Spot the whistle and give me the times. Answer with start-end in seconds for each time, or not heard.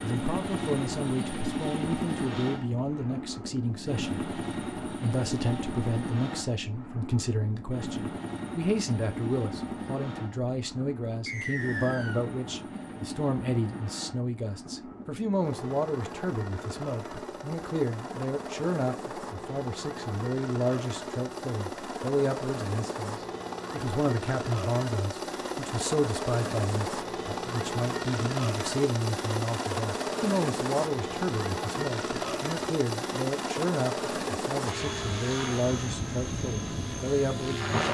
11.2-12.2.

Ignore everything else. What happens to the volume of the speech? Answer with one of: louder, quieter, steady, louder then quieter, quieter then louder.
steady.